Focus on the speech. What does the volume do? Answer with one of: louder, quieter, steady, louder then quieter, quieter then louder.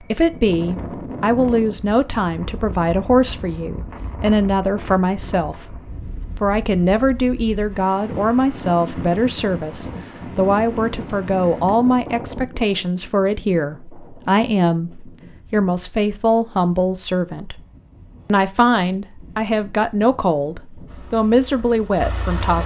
steady.